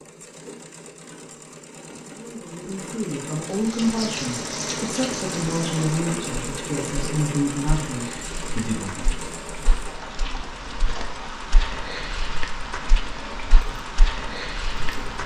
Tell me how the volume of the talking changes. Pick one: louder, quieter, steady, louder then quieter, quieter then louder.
steady.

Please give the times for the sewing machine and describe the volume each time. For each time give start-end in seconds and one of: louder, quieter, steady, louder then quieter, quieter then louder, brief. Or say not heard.
0.0-11.3 louder then quieter
13.6-15.2 brief.